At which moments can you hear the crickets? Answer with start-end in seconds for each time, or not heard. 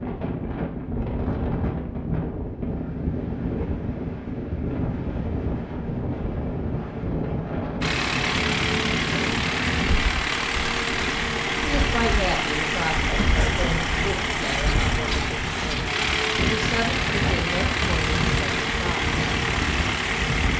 not heard.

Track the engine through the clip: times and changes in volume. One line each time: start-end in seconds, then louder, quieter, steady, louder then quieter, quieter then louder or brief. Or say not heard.
7.8-20.5 steady.